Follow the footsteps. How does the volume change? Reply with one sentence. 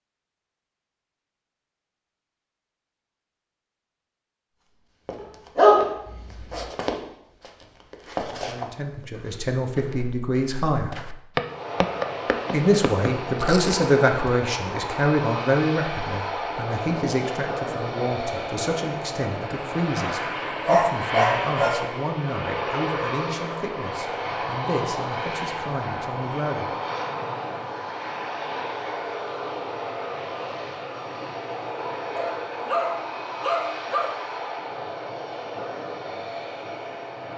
The loudness of the footsteps goes down, then up.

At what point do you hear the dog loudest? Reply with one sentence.
The loudest moment of the dog is at 6 seconds.